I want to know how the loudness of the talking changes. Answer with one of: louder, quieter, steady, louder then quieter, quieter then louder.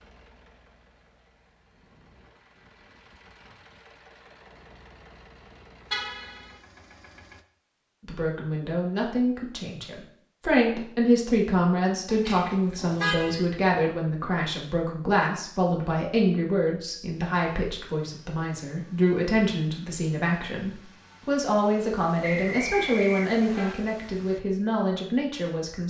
steady.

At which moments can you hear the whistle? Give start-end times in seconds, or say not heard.
22.2-23.8.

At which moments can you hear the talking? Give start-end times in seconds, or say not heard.
8.1-25.8.